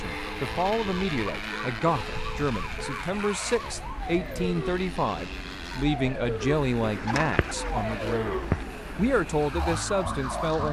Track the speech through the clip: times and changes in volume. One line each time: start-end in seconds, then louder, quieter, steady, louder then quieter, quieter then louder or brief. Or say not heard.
0.0-10.6 steady.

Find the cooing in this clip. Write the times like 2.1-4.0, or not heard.
6.8-8.7.